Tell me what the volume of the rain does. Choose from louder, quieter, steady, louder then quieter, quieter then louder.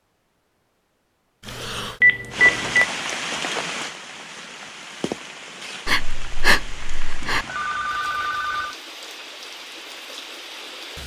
quieter.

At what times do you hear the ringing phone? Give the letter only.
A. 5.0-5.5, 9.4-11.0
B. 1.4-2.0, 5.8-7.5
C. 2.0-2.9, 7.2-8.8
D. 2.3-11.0
C.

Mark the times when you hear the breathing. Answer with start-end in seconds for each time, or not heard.
1.4-2.0, 5.8-7.5.